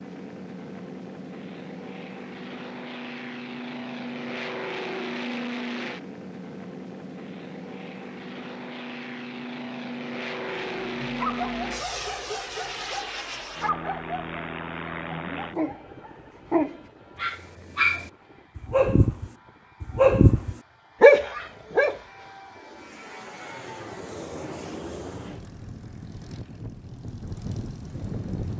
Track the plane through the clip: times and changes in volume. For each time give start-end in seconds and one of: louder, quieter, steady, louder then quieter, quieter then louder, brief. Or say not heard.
0.0-28.5 quieter then louder.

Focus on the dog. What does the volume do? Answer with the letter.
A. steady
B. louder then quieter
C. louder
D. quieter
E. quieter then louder
C.